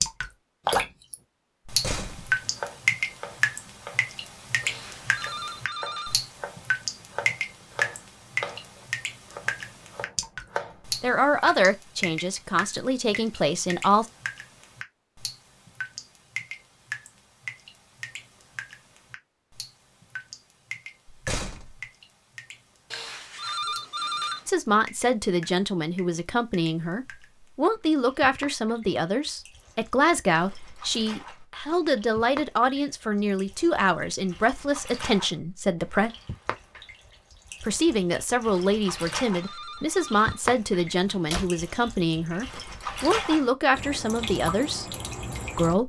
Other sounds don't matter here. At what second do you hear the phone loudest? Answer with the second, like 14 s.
24 s.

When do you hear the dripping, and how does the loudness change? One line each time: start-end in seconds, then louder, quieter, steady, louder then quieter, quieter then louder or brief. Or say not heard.
0.0-45.8 quieter then louder.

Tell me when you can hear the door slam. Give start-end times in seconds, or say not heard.
1.6-2.4, 21.1-21.9, 41.0-41.5.